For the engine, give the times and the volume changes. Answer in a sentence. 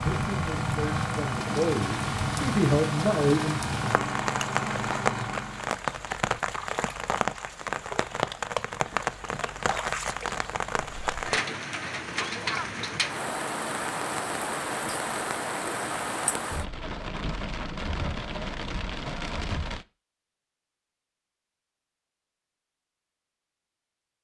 The engine can be heard from 0.0 to 5.7 s, at a steady volume.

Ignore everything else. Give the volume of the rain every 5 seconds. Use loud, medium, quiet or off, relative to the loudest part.
loud, loud, loud, loud, off.